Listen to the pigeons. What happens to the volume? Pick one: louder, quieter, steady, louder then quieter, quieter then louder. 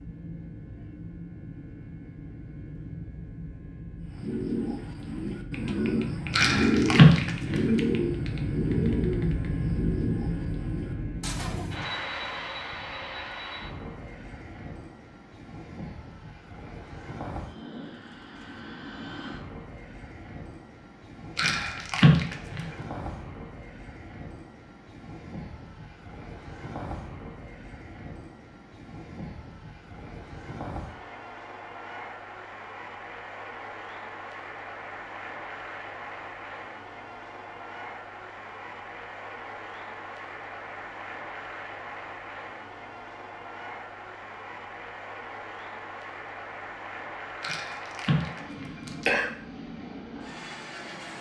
louder then quieter.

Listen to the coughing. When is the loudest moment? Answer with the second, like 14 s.
7 s.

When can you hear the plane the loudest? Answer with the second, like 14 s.
9 s.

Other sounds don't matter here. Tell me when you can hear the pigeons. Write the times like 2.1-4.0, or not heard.
4.0-11.8.